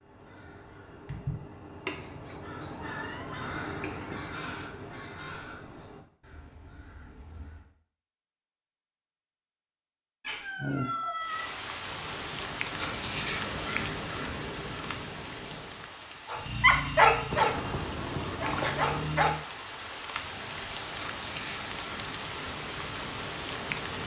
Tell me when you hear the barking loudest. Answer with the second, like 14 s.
17 s.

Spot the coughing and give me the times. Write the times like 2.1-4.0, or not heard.
not heard.